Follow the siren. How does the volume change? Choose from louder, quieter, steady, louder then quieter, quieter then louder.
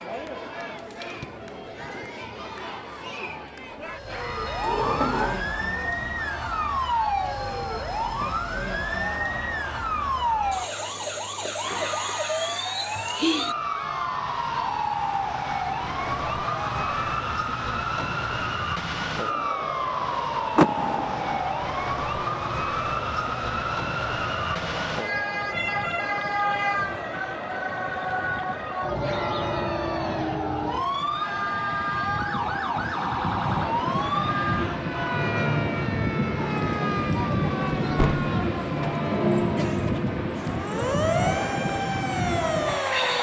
steady.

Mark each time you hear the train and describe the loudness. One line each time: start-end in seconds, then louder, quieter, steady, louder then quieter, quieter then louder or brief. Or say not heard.
25.1-43.1 louder.